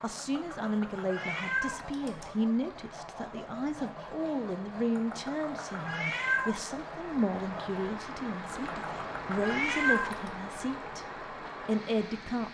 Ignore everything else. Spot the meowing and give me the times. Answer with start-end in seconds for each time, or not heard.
0.1-2.2, 5.0-6.6, 8.5-10.3.